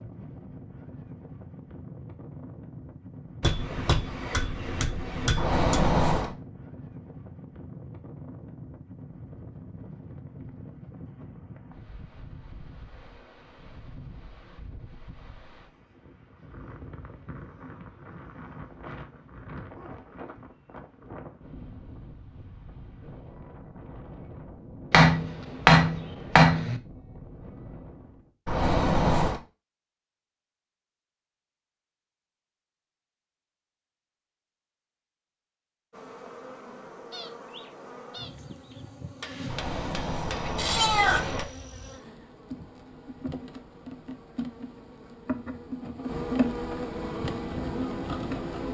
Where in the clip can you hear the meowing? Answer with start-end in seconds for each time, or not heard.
5.3-6.3, 28.4-29.4, 39.5-41.5.